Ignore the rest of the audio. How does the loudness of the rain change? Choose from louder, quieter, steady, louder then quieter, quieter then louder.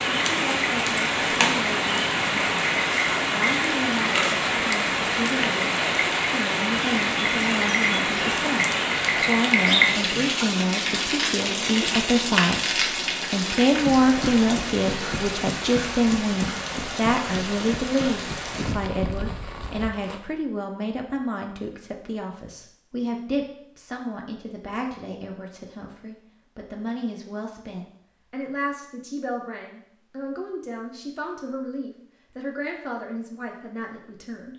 quieter.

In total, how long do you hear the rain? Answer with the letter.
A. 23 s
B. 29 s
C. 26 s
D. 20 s
D.